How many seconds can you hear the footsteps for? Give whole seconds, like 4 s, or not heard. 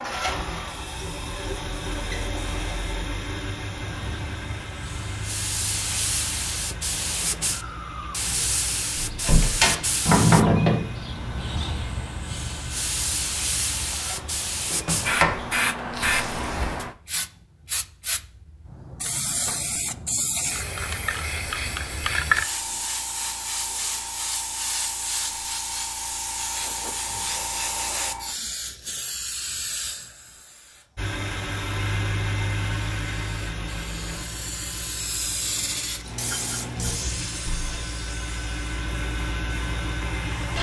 not heard.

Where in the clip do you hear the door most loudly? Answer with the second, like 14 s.
10 s.